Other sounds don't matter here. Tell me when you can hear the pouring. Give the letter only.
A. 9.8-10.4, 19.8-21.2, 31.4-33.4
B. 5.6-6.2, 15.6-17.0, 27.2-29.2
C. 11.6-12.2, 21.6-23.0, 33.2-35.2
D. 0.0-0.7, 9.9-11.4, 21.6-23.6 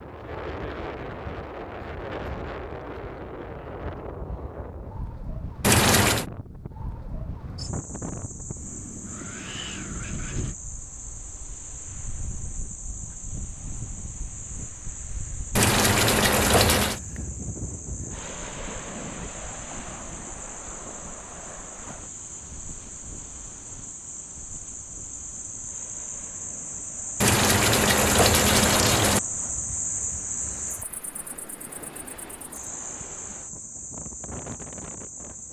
B.